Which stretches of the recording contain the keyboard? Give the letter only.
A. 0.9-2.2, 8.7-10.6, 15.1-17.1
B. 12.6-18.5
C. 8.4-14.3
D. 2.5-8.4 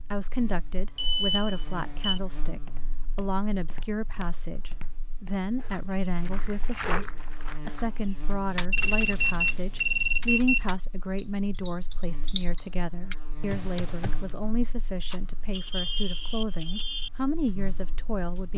C.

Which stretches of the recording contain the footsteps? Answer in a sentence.
The footsteps can be heard from 2.5 to 8.4 s.